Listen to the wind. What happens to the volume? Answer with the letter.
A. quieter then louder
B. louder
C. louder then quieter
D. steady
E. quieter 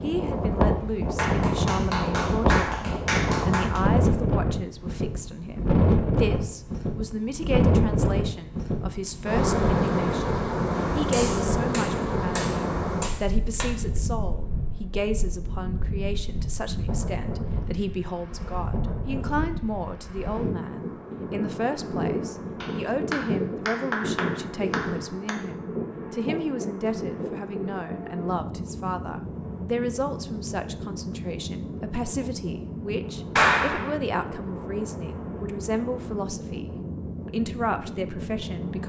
E.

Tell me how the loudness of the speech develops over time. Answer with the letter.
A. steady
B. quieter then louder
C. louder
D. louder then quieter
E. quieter
A.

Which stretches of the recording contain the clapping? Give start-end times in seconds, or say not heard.
1.1-3.8, 10.9-13.7, 22.6-25.4, 33.4-33.9.